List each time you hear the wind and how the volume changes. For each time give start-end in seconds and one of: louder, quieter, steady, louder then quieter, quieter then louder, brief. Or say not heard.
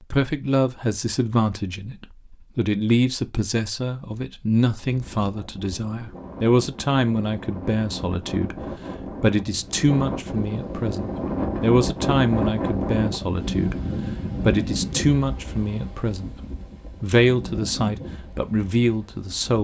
4.8-19.6 louder then quieter.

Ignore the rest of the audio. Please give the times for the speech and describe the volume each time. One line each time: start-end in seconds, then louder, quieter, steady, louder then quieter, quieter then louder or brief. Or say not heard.
0.0-16.4 steady
17.0-19.6 brief.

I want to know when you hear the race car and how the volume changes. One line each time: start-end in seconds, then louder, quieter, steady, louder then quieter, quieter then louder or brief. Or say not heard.
not heard.